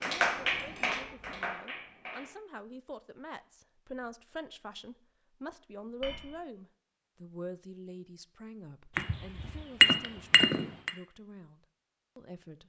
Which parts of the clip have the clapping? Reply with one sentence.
You can hear the clapping from 0.0 to 2.3 s.